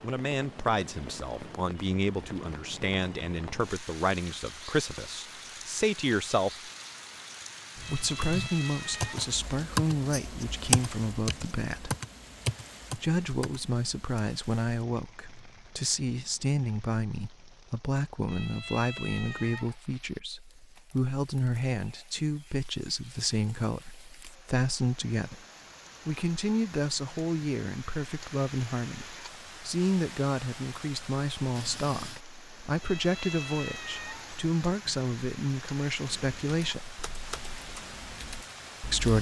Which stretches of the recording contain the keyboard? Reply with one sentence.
You can hear the keyboard from 7.8 to 14.2 s and from 36.1 to 39.1 s.